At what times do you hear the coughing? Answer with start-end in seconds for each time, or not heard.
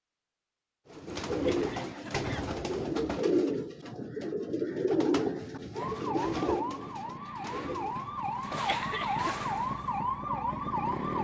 1.4-2.5, 8.5-9.3.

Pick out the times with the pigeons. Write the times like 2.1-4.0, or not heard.
0.9-8.2.